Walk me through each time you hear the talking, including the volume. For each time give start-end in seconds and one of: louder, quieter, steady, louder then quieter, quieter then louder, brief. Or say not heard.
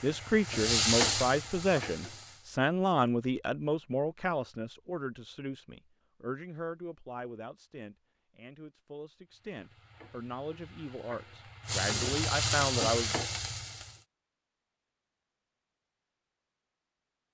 0.0-13.2 quieter then louder.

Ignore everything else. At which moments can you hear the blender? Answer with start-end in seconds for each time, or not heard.
not heard.